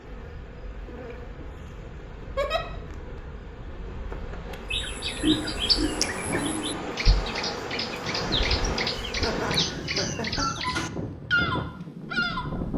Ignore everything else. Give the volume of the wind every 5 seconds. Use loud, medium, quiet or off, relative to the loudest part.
quiet, loud, loud.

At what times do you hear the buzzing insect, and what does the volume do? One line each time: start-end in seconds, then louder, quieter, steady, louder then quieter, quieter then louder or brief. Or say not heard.
0.0-9.7 louder.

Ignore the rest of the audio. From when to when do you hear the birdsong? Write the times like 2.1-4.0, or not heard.
4.7-12.6.